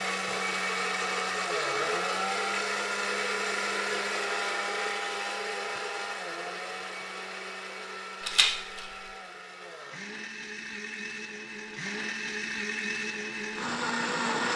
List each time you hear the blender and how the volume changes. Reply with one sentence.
You can hear the blender from 0.0 to 14.5 s, getting quieter then louder.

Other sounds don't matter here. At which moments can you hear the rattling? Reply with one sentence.
You can hear the rattling from 8.2 to 9.0 s.